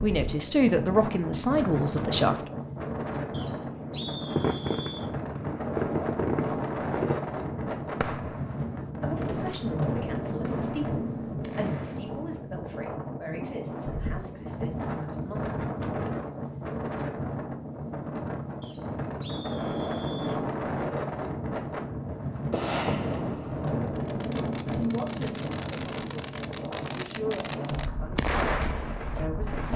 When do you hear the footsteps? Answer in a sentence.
The footsteps can't be heard in this clip.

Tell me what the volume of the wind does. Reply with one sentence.
The volume of the wind stays about the same.